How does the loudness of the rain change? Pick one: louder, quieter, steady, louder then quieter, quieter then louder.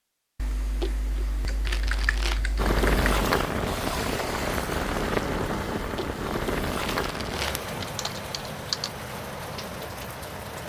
quieter.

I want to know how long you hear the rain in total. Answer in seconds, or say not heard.
8 s.